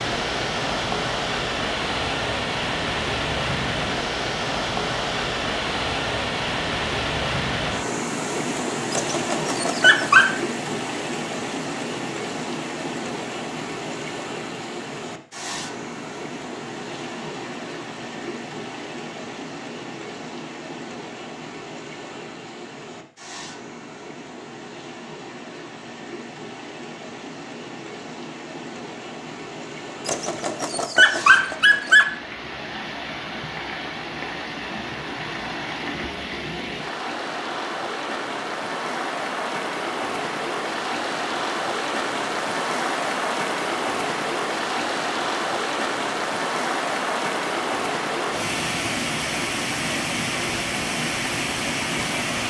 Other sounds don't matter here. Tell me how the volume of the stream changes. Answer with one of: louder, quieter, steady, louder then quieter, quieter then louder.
quieter then louder.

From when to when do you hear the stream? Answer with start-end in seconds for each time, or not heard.
0.0-52.4.